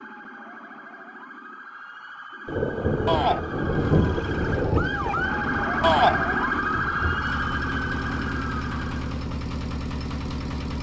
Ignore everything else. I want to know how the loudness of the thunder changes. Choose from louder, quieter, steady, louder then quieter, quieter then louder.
quieter.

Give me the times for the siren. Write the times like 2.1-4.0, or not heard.
0.0-9.2.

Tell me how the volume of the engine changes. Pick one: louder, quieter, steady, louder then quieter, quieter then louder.
louder.